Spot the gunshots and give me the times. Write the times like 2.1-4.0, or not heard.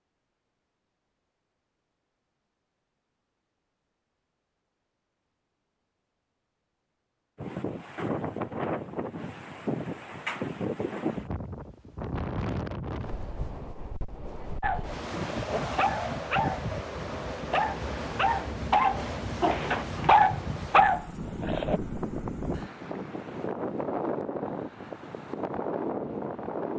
not heard.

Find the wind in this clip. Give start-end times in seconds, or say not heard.
7.3-26.7.